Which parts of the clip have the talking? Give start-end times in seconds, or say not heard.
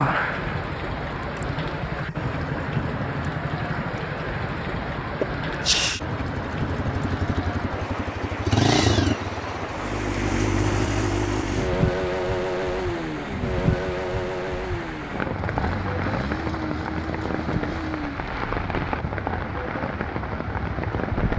not heard.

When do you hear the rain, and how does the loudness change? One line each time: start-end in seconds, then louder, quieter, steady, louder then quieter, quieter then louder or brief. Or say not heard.
0.0-21.3 steady.